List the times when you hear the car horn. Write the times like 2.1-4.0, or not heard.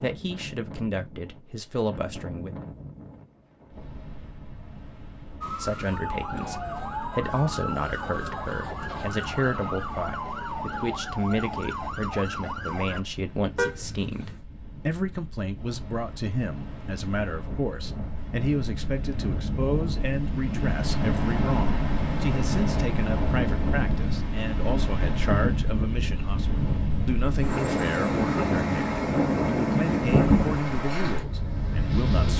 13.6-14.4.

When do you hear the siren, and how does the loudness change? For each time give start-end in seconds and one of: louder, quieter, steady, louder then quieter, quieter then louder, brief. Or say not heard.
5.4-13.1 steady.